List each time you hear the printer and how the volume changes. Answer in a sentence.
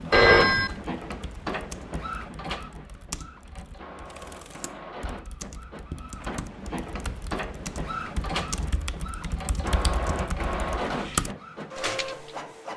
The printer can be heard from 0.0 to 12.7 s, getting quieter then louder.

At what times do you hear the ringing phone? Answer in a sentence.
The ringing phone can be heard from 0.1 to 0.8 s.